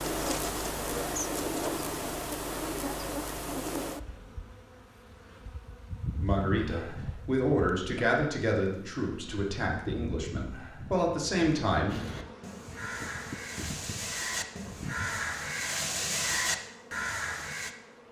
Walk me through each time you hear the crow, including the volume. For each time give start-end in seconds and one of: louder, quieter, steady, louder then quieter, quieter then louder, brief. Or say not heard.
11.8-17.8 louder.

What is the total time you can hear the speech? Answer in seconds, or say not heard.
6 s.